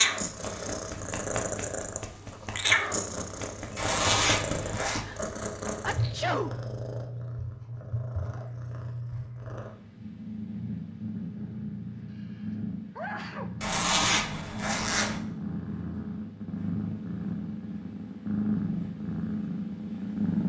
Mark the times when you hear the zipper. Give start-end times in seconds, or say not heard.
3.8-5.0, 13.6-15.2.